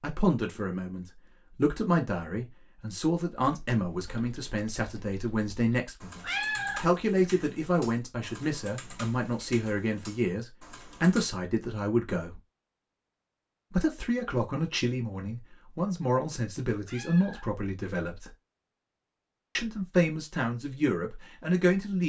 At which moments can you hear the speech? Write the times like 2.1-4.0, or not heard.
0.0-12.4, 13.7-18.3, 19.6-22.0.